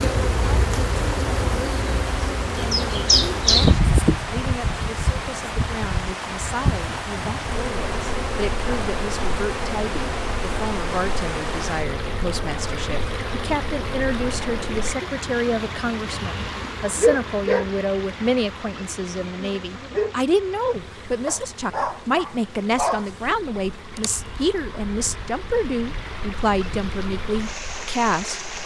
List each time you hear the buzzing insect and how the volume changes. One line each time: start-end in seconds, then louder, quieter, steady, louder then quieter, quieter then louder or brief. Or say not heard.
0.0-28.6 quieter.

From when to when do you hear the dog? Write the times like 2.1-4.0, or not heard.
21.2-23.1.